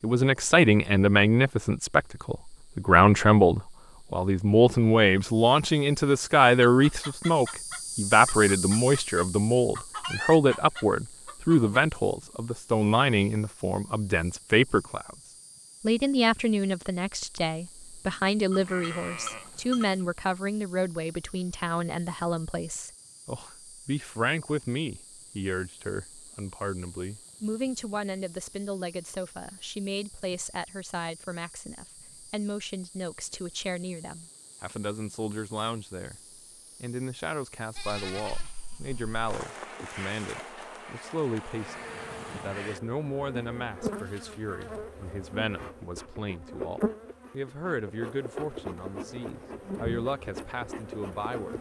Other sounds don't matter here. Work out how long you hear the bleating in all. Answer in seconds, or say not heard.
3 s.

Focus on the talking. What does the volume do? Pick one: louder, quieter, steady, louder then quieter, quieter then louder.
quieter.